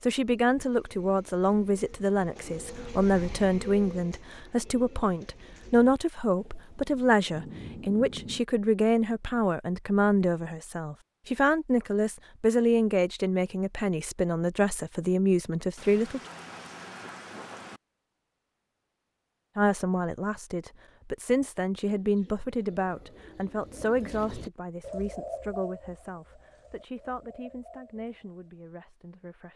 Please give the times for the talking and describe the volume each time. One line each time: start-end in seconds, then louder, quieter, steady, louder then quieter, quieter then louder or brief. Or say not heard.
0.0-16.2 steady
19.6-29.5 quieter.